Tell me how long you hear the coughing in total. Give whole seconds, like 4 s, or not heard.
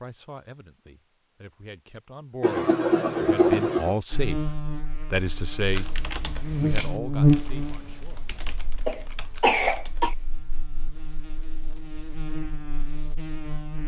3 s.